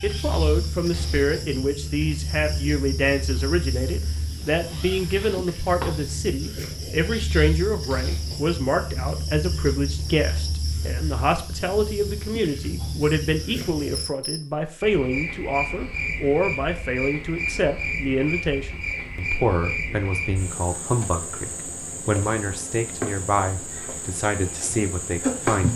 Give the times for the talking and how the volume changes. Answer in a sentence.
You can hear the talking from 0.0 to 25.7 s, at a steady volume.